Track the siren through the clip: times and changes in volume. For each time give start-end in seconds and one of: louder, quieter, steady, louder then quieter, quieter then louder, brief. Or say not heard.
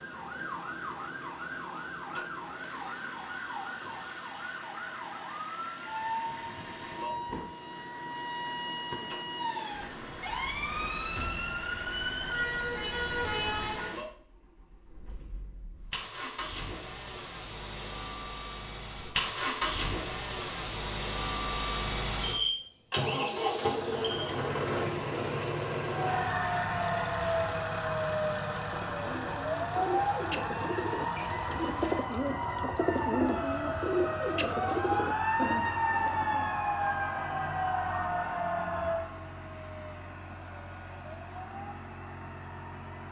0.0-13.9 louder
25.9-43.0 quieter.